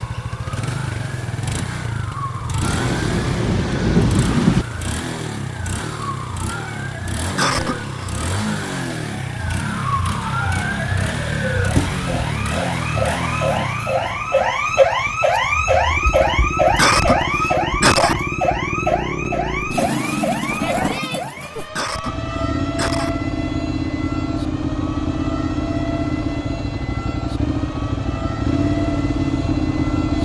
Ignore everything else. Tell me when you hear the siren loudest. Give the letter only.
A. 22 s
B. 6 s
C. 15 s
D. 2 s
C.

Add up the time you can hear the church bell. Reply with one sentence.
The church bell can't be heard in this clip.